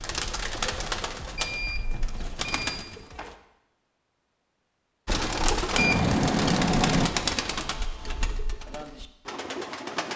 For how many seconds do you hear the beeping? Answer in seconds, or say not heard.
3 s.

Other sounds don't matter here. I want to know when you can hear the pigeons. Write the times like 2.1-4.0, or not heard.
0.0-3.4, 5.0-10.1.